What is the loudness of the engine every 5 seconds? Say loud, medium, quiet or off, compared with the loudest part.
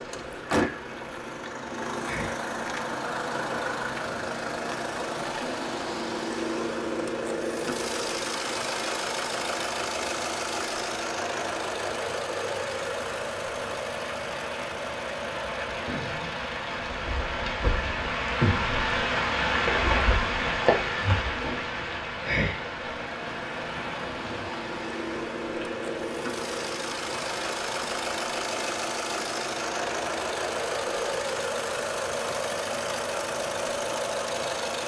loud, loud, loud, medium, medium, loud, loud.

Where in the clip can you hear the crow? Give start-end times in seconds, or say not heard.
not heard.